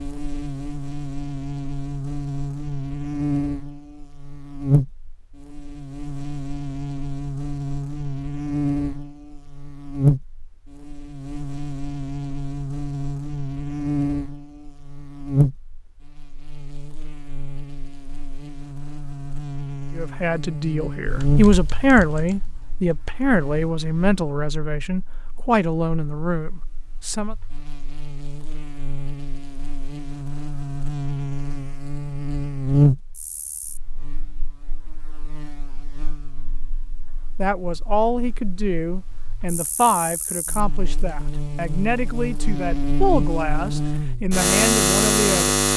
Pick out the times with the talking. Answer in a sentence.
The talking can be heard from 19.9 to 27.4 s and from 37.4 to 45.5 s.